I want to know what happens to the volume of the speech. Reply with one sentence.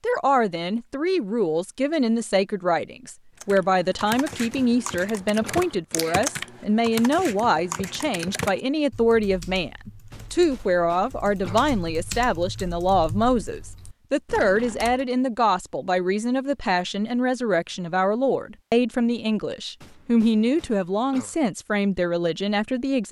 The loudness of the speech stays about the same.